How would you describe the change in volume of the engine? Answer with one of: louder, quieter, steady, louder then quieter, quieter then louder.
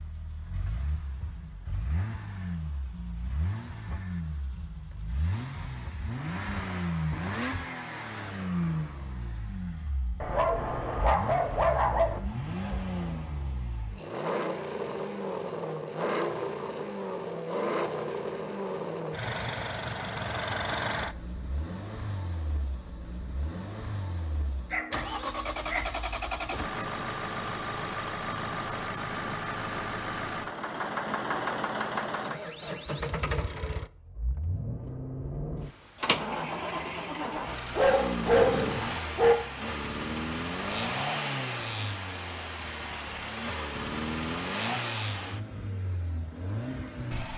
steady.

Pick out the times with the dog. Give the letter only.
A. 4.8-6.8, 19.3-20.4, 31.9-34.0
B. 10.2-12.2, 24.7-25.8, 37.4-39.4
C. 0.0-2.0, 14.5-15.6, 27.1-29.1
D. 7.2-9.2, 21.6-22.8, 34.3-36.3
B.